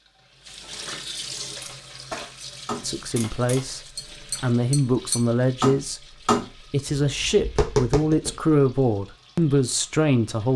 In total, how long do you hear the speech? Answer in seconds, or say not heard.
7 s.